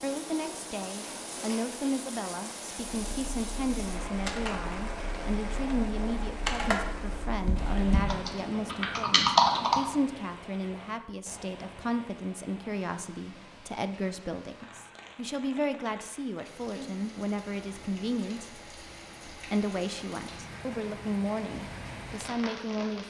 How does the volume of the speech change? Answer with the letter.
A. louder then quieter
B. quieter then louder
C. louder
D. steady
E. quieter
D.